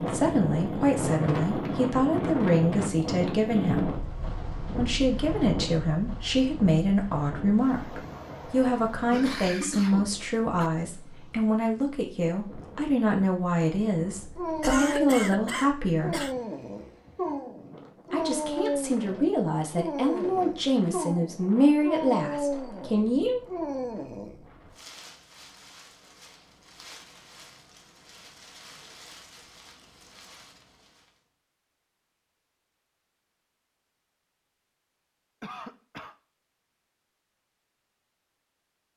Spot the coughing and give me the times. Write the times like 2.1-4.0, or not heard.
9.1-10.7, 14.6-16.4, 35.4-36.1.